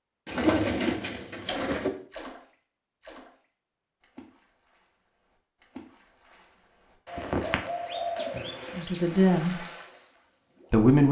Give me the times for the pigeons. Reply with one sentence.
The pigeons can be heard from 0.2 to 1.9 s and from 7.0 to 9.3 s.